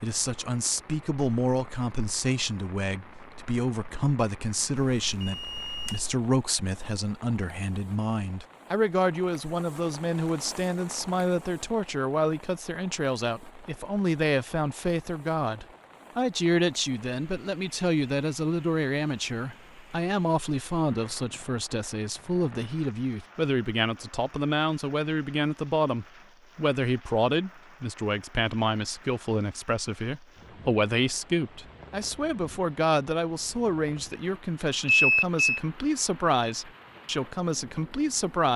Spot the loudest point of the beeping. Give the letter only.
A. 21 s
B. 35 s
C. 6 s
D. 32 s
B.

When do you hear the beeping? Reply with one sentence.
You can hear the beeping from 5.0 to 6.2 s and from 34.9 to 35.6 s.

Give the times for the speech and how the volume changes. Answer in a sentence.
You can hear the speech from 0.0 to 38.5 s, at a steady volume.